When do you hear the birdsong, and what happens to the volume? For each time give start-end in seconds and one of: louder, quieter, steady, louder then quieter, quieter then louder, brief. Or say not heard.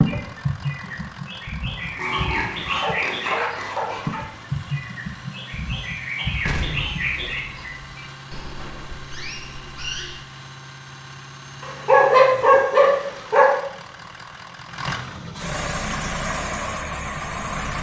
0.0-10.2 quieter.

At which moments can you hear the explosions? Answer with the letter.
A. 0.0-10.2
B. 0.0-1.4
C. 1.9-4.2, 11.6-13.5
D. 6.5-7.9
D.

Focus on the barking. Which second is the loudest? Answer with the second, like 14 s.
12 s.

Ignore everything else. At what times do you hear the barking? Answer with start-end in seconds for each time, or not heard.
1.9-4.2, 11.6-13.5.